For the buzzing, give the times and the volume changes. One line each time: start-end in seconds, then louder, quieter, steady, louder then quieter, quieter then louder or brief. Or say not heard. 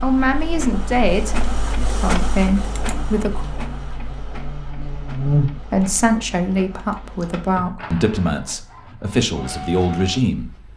0.0-6.2 louder.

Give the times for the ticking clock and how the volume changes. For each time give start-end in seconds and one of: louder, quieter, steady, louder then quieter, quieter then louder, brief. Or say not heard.
not heard.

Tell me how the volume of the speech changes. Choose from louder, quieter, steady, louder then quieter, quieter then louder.
steady.